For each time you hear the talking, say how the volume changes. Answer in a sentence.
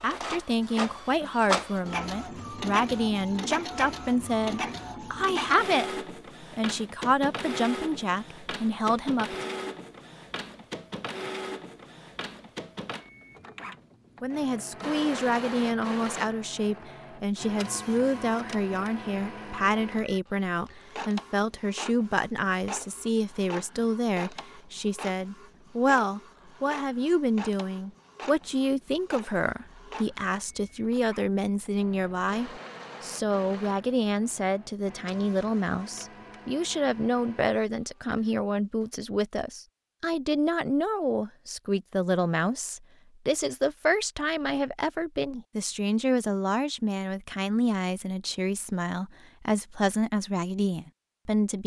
The talking can be heard from 0.0 to 9.6 s, at a steady volume; and from 14.2 to 51.6 s, at a steady volume.